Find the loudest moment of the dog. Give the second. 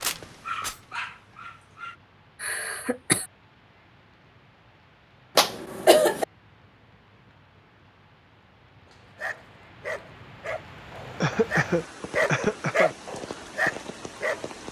13 s.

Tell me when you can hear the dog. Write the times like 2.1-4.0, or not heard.
0.0-1.9, 8.9-14.5.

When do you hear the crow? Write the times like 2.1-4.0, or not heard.
not heard.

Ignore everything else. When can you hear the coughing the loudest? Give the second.
6 s.